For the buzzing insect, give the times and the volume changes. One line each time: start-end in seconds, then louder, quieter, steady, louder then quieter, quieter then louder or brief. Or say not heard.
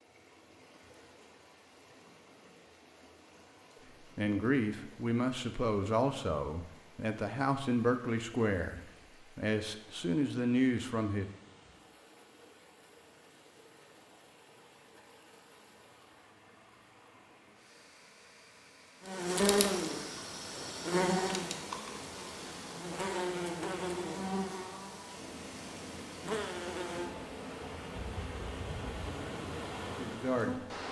19.1-30.8 quieter.